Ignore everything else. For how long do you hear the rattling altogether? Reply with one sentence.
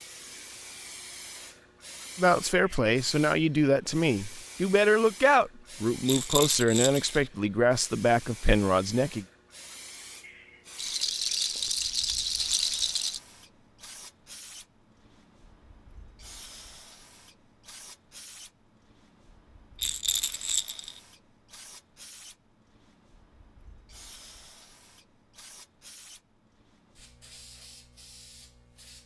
You can hear the rattling for 5 seconds altogether.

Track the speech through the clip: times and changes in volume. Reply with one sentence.
The speech can be heard from 2.1 to 9.2 s, at a steady volume.